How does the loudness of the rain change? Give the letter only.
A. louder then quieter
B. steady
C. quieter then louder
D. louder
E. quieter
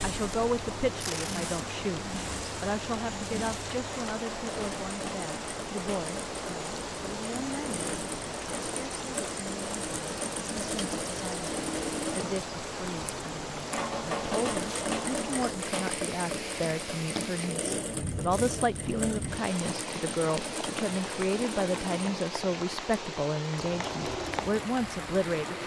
B.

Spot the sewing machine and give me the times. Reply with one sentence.
You can hear the sewing machine from 0.0 to 25.6 s.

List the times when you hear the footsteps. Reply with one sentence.
You can't hear the footsteps here.